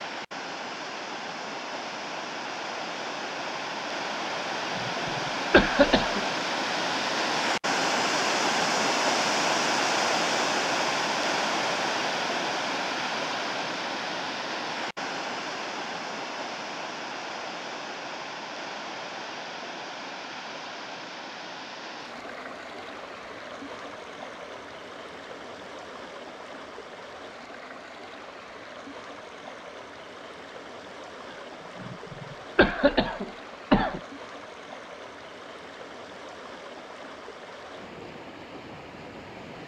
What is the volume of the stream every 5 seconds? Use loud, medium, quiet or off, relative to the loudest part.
medium, loud, loud, medium, quiet, quiet, quiet, quiet.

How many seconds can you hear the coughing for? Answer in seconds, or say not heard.
4 s.